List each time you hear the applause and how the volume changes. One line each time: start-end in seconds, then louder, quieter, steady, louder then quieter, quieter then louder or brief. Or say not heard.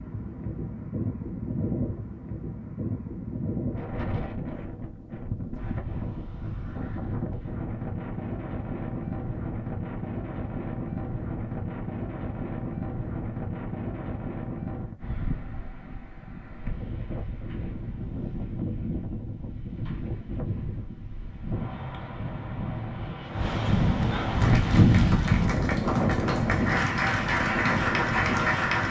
24.3-28.8 louder.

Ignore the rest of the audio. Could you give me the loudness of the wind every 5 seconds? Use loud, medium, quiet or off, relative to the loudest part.
medium, medium, medium, medium, loud, loud.